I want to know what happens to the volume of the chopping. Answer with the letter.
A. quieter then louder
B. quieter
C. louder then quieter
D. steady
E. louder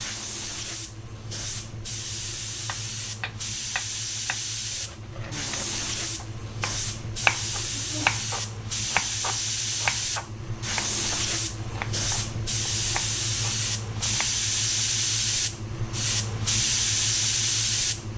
C.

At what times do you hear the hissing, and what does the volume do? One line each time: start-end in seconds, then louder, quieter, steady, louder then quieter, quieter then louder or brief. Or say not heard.
0.0-18.1 louder.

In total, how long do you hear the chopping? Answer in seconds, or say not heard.
12 s.